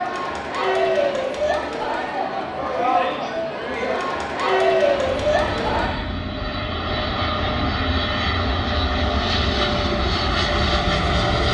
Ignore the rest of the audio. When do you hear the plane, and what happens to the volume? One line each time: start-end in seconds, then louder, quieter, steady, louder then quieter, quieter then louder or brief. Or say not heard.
4.8-11.4 louder.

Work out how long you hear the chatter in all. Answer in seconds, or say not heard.
6 s.